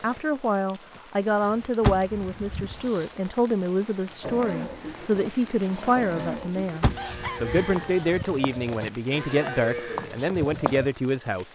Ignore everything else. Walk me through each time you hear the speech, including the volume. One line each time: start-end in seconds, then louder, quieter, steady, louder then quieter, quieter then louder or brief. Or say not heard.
0.0-11.5 steady.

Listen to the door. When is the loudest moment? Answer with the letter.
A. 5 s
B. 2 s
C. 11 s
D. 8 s
B.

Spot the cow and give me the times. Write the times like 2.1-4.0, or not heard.
4.2-10.9.